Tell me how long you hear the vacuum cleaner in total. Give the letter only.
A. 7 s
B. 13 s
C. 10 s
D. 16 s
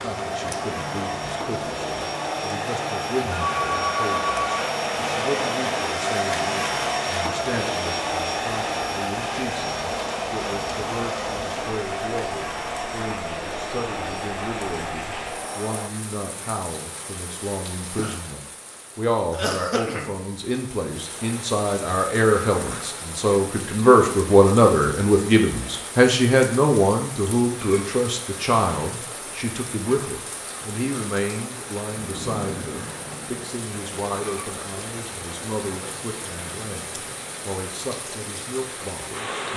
D.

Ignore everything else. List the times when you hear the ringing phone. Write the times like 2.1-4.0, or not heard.
3.3-4.7.